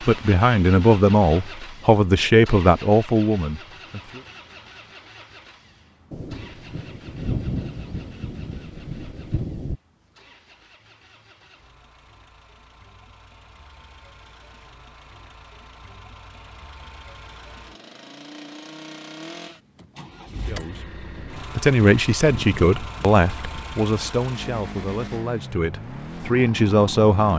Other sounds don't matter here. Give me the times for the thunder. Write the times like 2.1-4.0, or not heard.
6.1-9.8, 21.1-24.2.